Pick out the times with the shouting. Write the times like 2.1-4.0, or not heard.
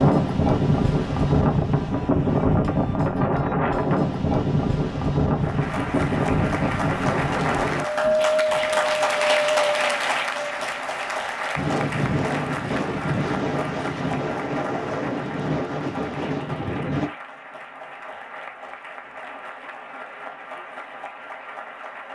not heard.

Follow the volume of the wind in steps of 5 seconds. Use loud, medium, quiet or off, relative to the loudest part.
loud, loud, medium, medium, off.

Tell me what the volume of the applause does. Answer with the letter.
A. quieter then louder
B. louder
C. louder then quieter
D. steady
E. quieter
E.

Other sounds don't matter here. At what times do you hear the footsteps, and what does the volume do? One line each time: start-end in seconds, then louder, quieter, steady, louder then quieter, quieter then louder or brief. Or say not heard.
not heard.